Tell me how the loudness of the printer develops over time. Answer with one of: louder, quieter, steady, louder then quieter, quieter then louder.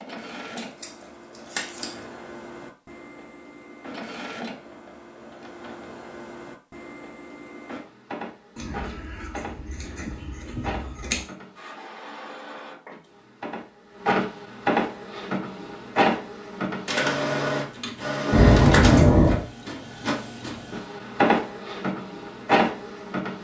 louder.